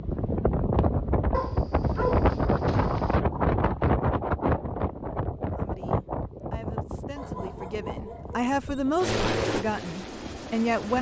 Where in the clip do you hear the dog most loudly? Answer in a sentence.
The volume of the dog peaks at 2 seconds.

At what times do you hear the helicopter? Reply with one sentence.
You can hear the helicopter from 8.9 to 10.9 s.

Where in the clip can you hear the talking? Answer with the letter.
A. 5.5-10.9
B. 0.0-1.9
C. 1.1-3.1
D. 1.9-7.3
A.